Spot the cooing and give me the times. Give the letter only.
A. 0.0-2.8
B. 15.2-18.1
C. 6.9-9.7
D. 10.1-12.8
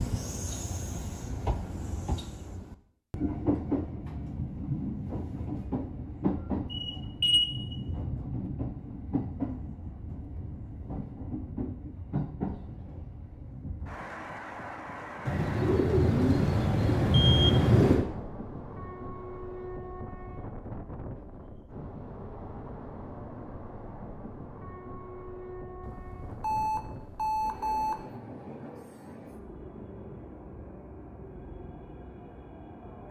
B.